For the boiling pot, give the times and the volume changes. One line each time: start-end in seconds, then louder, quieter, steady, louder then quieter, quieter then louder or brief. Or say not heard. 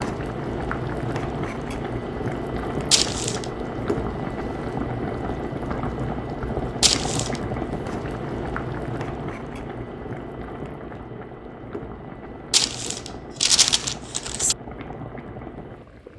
0.0-16.1 quieter.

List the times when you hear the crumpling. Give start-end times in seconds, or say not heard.
2.9-3.5, 6.8-7.4, 12.5-14.6.